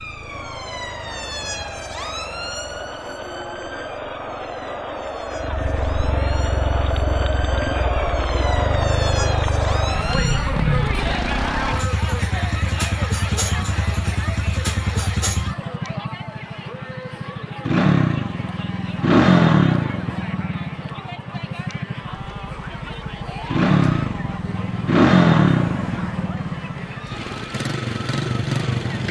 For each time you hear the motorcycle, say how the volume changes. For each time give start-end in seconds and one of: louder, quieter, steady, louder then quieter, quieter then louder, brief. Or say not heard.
0.0-29.0 louder.